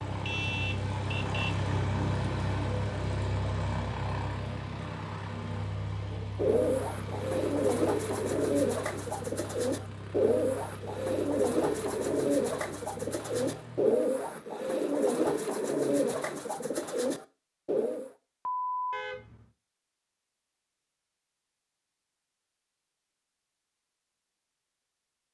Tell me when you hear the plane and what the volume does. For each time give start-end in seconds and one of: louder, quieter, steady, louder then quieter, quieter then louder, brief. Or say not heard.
0.0-14.0 quieter.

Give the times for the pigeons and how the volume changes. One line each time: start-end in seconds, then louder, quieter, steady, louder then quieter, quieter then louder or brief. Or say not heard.
6.1-18.1 steady.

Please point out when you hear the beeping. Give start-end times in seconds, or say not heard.
18.4-19.0.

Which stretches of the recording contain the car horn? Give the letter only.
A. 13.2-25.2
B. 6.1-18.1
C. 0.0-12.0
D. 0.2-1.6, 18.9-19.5
D.